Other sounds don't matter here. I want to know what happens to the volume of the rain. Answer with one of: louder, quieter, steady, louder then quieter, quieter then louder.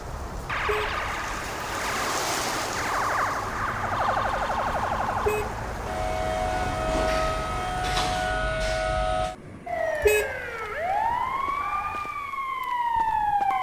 louder then quieter.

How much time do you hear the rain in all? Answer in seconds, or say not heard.
8 s.